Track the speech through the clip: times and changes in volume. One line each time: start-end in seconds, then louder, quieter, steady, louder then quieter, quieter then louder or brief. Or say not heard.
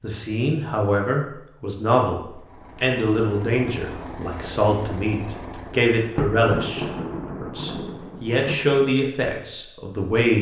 0.0-10.3 steady.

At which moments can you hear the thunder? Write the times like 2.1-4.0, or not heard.
6.2-8.8.